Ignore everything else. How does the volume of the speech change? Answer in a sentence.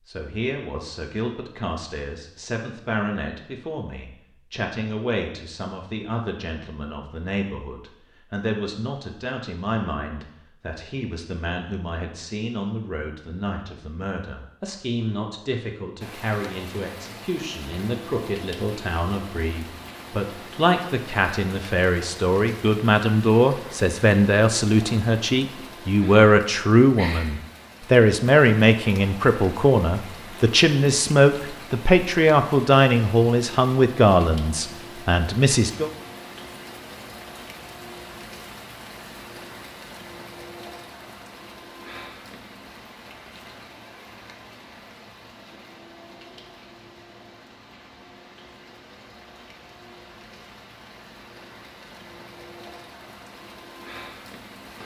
The loudness of the speech goes up.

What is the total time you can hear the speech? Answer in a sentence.
The speech can be heard for 36 seconds in total.